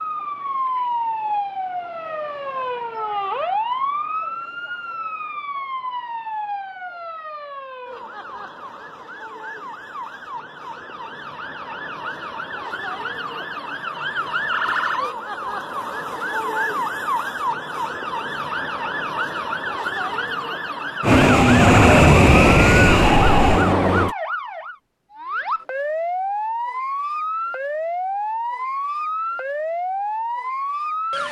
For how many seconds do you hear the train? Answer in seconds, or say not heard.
3 s.